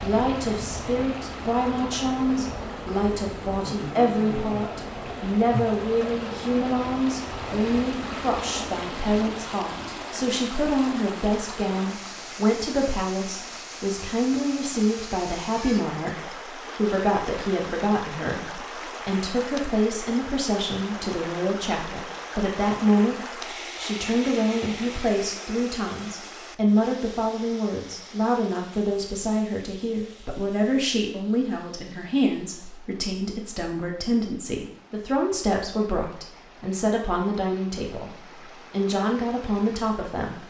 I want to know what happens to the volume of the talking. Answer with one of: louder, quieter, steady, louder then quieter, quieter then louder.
steady.